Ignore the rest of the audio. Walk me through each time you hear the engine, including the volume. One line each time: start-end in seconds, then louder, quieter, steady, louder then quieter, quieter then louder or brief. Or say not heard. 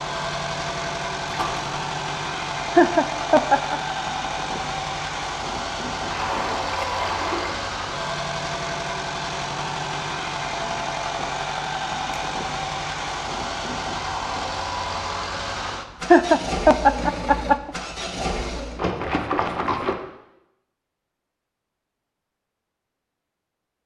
0.0-18.8 steady.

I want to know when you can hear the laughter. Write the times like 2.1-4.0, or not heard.
2.8-3.8, 16.1-17.7.